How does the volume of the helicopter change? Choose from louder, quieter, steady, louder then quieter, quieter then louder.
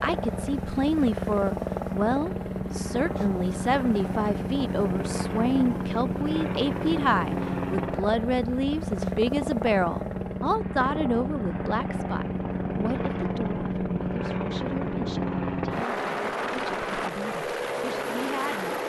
steady.